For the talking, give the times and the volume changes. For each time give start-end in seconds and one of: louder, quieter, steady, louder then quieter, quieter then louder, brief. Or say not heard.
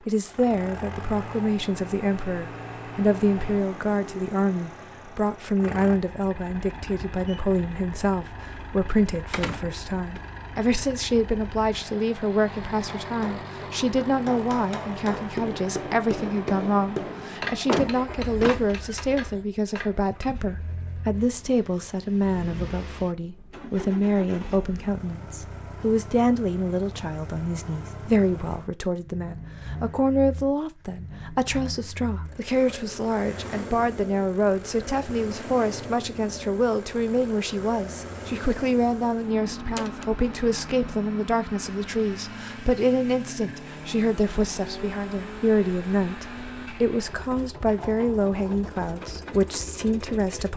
0.1-50.5 steady.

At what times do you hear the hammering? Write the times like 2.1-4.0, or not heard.
12.8-20.4.